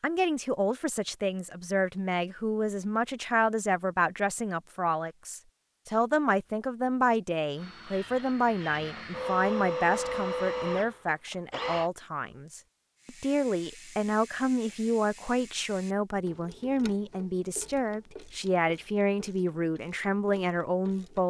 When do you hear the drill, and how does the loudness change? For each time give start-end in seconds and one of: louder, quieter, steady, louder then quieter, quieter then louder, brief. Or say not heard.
7.5-11.9 louder then quieter.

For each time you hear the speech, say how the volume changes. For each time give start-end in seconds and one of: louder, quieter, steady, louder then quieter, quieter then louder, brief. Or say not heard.
0.0-21.2 steady.